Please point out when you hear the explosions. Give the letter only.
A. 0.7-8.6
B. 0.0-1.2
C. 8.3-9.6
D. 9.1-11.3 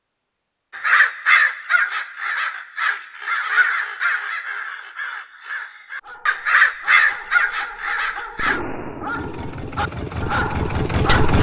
C.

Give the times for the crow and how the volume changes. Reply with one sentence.
You can hear the crow from 0.7 to 8.6 s, getting quieter then louder.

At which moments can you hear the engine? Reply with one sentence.
You can hear the engine from 9.1 to 11.3 s.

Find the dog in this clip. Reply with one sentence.
The dog can be heard from 6.0 to 11.3 s.